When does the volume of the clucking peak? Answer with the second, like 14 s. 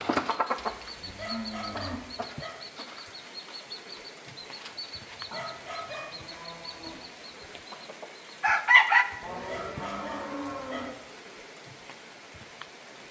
9 s.